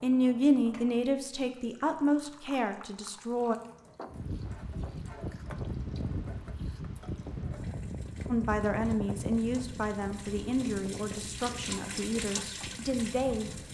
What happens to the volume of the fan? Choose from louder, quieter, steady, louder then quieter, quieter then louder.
quieter.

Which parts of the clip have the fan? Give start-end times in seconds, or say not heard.
4.0-13.6.